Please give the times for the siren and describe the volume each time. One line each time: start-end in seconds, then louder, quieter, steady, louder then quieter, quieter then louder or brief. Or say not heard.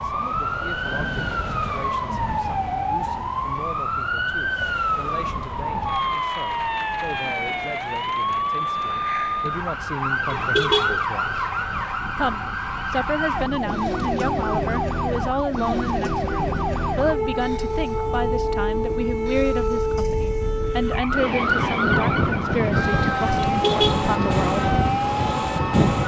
0.0-26.0 steady.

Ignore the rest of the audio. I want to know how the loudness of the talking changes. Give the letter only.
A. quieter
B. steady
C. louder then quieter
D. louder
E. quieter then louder
D.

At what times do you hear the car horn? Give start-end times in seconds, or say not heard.
10.3-11.1, 23.4-24.1.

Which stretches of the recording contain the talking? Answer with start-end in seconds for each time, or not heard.
0.0-11.4, 12.2-24.6.